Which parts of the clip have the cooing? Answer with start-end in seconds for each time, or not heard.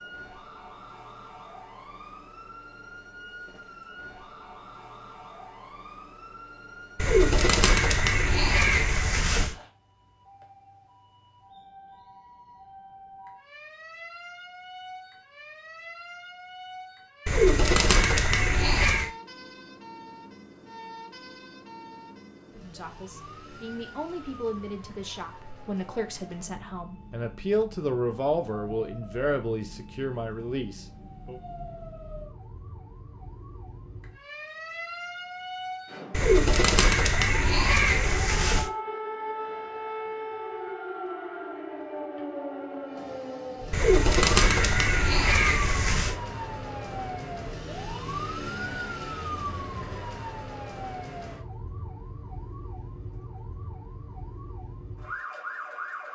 7.0-9.6, 17.2-19.1, 36.1-38.7, 43.7-46.1.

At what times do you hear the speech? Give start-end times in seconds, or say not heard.
22.6-31.4.